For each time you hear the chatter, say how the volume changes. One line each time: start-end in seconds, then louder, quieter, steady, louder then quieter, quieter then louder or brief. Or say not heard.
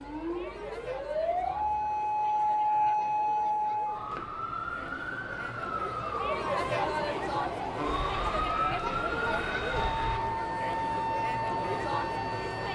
0.0-12.7 louder.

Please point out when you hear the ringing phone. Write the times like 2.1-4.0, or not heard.
not heard.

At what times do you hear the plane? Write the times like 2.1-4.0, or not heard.
7.8-10.2.